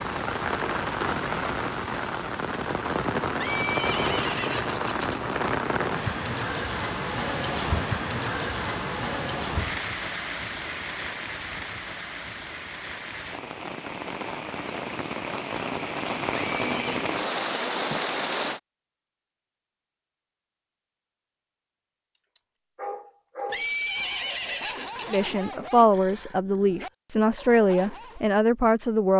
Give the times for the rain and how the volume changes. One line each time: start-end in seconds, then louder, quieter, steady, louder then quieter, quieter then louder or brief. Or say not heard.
0.0-18.6 quieter then louder.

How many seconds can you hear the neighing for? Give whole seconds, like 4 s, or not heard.
4 s.